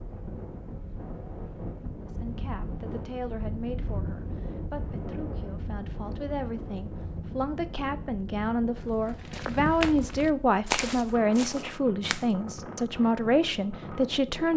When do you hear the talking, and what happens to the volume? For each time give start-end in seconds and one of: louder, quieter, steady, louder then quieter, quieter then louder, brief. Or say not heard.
2.0-14.5 louder.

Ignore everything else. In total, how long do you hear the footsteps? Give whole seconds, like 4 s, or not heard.
3 s.